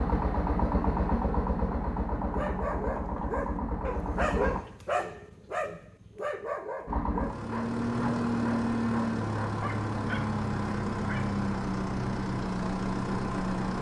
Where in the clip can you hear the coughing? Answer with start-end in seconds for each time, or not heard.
not heard.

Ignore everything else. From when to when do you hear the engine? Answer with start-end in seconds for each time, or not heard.
0.0-4.6, 6.8-13.7.